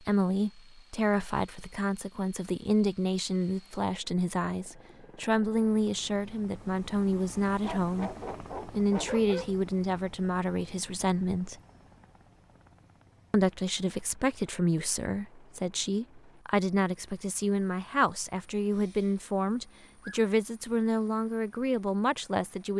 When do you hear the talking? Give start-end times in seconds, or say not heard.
0.1-8.1, 8.7-11.6, 13.3-22.7.